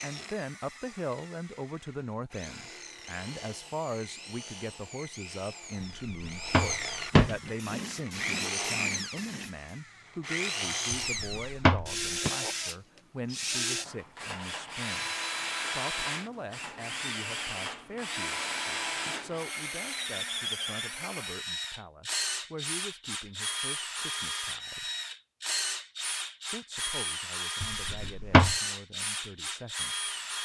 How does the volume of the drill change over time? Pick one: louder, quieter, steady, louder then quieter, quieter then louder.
louder.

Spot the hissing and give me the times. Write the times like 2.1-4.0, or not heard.
7.4-9.7.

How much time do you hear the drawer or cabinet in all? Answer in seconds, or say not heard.
4 s.